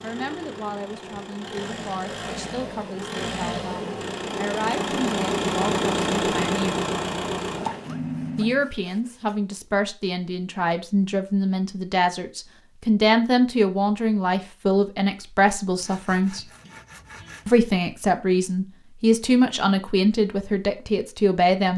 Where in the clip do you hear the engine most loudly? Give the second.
6 s.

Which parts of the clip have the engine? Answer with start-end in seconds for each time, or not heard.
0.0-8.7.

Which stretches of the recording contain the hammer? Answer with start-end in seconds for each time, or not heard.
not heard.